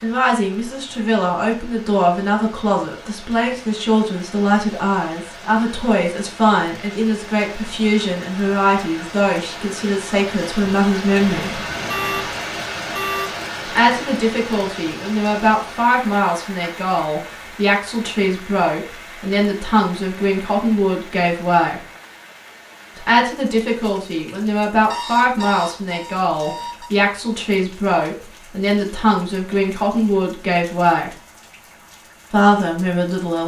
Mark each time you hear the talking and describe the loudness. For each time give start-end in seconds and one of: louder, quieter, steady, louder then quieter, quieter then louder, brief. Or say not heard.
0.0-11.7 steady
13.7-21.8 steady
22.9-31.1 steady
32.3-33.4 brief.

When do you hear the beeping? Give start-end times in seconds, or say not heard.
11.8-13.3, 24.9-26.9.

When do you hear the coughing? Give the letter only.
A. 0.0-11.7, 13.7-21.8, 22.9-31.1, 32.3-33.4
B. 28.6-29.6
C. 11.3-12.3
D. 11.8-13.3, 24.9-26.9
C.